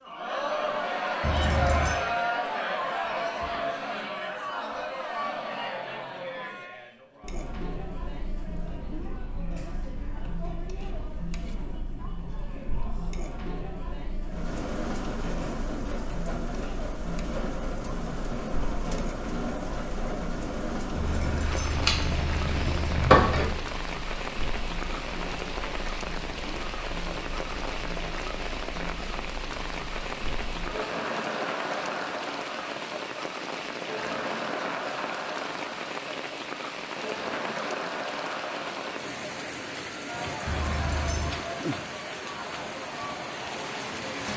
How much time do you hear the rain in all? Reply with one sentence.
You can hear the rain for 30 seconds altogether.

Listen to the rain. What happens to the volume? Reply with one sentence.
The loudness of the rain stays about the same.